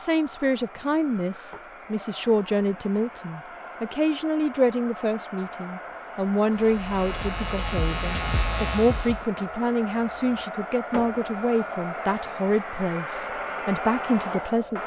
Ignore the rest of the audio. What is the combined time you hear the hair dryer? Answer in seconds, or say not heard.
15 s.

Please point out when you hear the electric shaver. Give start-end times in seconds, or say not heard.
6.5-9.2.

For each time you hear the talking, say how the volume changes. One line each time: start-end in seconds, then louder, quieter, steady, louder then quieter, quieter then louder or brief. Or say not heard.
0.0-14.8 steady.